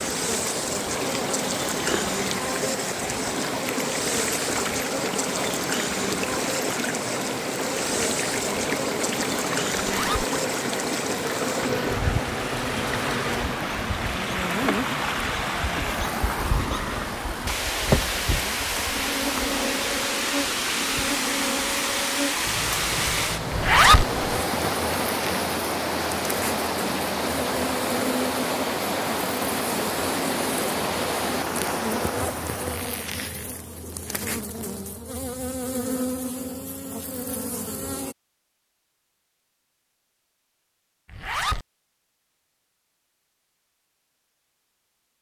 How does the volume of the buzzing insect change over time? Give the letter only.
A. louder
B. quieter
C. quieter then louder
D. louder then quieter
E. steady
E.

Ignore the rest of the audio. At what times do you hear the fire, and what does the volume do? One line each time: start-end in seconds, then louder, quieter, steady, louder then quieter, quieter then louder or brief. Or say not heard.
not heard.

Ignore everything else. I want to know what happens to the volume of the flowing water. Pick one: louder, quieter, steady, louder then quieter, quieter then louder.
steady.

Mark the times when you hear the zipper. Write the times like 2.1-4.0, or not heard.
9.8-10.2, 23.5-24.1, 41.1-41.6.